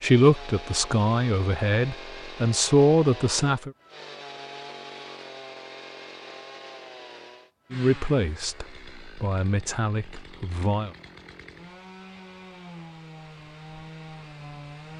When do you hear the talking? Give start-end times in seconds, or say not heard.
0.0-3.7, 7.7-10.9.